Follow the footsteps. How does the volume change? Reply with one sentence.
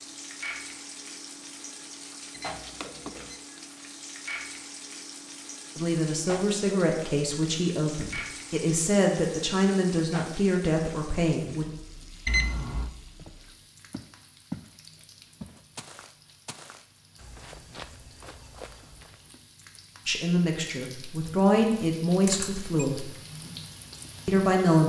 The volume of the footsteps goes down.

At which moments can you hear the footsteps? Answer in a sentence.
The footsteps can be heard from 13.2 to 19.2 s.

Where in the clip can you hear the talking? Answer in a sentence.
The talking can be heard from 5.8 to 11.7 s, from 20.1 to 23.1 s and from 24.2 to 24.8 s.